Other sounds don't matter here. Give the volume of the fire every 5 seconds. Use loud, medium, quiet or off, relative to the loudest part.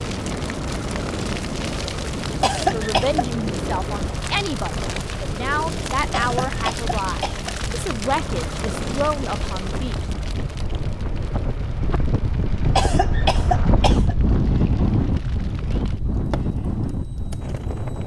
loud, loud, medium, medium.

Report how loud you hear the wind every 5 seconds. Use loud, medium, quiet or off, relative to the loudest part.
medium, medium, loud, loud.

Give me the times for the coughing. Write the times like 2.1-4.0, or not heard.
2.4-3.2, 6.1-7.5, 12.8-14.2.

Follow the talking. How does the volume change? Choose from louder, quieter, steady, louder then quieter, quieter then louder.
steady.